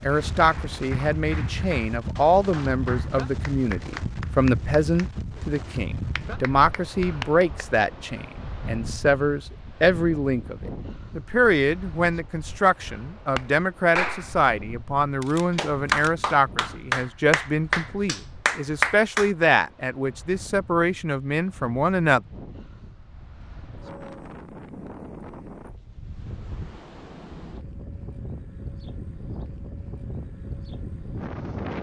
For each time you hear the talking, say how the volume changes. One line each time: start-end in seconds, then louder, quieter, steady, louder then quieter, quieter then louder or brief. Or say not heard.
0.0-22.2 steady.